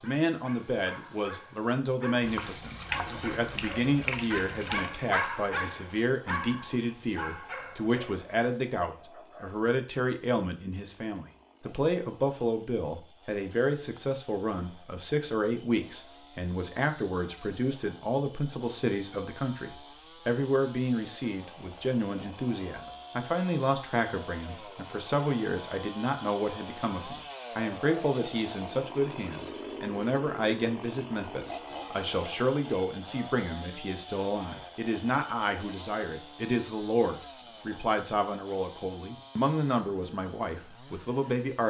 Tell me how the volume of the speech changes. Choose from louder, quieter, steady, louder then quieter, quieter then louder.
steady.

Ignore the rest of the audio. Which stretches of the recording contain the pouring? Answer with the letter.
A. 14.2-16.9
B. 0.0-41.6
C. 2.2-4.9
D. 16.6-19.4
C.